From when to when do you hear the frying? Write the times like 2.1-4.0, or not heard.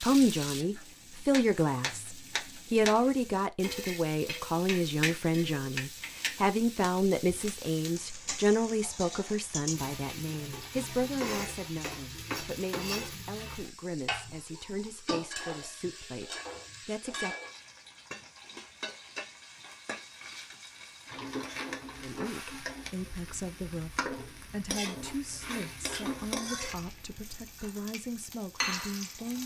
0.0-29.4.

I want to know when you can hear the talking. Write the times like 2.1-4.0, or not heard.
0.0-17.4, 22.0-29.4.